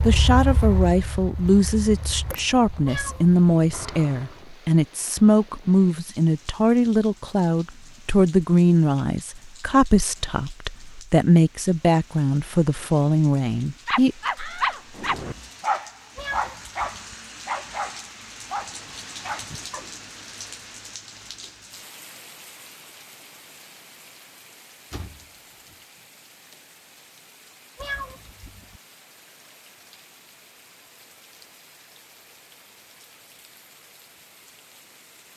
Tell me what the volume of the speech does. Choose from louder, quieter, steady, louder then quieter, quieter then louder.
steady.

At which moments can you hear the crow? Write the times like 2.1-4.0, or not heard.
not heard.